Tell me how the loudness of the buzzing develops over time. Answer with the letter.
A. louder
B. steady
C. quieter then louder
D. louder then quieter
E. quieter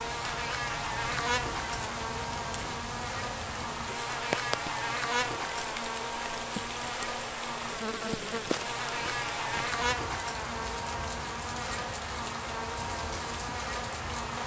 B.